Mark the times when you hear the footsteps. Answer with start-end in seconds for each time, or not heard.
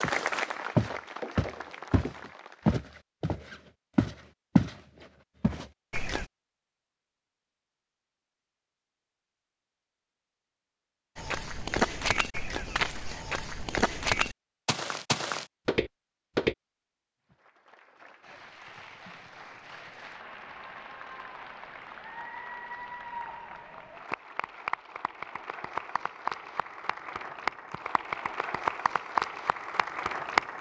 0.0-6.2, 11.2-16.6.